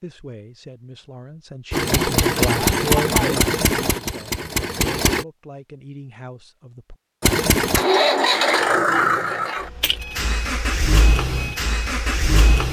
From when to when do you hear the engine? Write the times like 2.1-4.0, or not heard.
1.7-5.2, 7.2-12.6.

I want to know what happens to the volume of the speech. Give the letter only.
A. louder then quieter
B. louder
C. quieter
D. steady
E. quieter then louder
A.